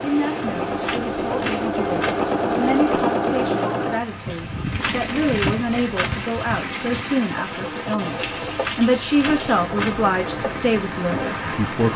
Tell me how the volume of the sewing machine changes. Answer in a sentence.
The loudness of the sewing machine goes down.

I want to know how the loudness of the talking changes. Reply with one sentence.
The loudness of the talking goes up.